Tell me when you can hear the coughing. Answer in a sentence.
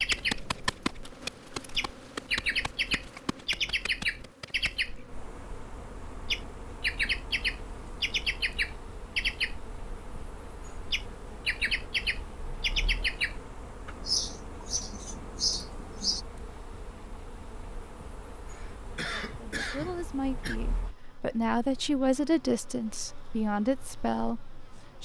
The coughing can be heard from 18.5 to 20.6 s.